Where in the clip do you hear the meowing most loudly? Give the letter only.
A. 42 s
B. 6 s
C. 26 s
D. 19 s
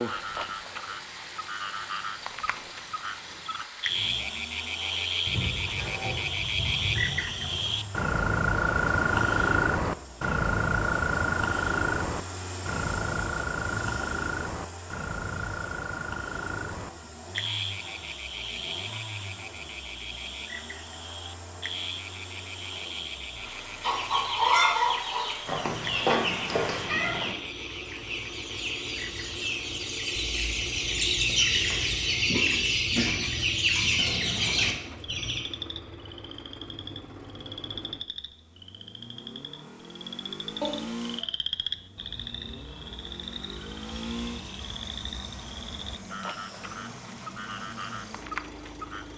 C.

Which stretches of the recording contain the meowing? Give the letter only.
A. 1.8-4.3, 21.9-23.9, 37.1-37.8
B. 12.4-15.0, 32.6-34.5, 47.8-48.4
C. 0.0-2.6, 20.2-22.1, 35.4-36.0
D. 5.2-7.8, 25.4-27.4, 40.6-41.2
D.